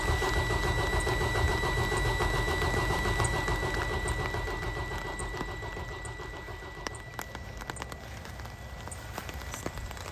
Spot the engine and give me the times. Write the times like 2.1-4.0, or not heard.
0.0-10.0.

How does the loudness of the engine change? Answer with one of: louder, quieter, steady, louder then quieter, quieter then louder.
quieter.